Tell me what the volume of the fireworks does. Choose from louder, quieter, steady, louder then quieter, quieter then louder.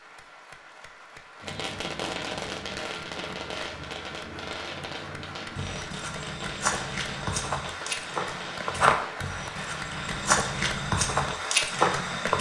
quieter.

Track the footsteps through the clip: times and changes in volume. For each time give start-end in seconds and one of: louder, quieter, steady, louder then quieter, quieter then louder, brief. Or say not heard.
5.5-12.3 louder.